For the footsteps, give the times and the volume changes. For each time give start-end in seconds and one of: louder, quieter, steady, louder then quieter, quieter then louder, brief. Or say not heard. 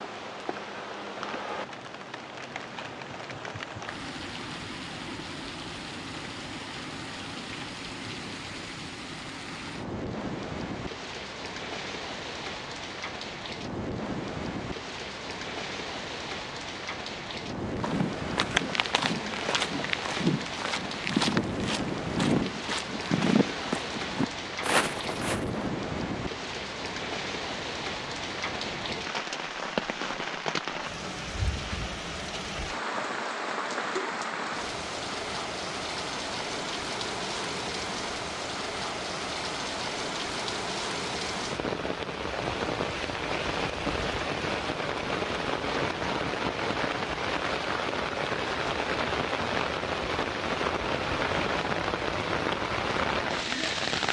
17.6-25.6 steady.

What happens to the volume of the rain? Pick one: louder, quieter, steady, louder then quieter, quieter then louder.
louder.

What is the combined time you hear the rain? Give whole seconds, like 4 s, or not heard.
54 s.